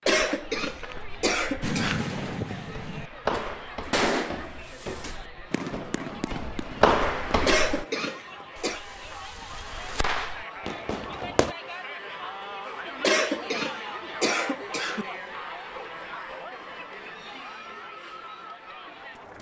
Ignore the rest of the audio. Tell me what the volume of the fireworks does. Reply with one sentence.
The loudness of the fireworks goes down, then up.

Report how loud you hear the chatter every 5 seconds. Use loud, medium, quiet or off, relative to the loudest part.
medium, medium, loud, loud.